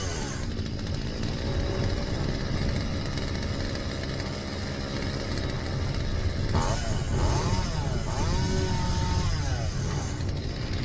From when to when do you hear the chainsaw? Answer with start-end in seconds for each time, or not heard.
0.0-10.8.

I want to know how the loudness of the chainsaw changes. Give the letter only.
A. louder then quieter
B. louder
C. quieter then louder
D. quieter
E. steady
E.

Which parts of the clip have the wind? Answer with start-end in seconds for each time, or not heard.
0.0-10.8.